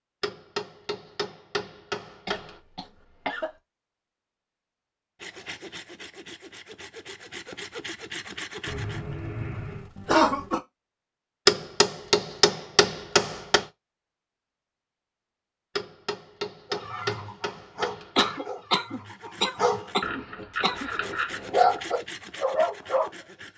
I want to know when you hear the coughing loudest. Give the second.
10 s.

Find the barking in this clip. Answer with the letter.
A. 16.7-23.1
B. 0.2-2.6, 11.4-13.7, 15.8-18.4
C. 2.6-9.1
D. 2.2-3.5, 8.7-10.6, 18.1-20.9
A.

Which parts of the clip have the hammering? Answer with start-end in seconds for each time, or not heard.
0.2-2.6, 11.4-13.7, 15.8-18.4.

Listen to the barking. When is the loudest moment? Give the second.
22 s.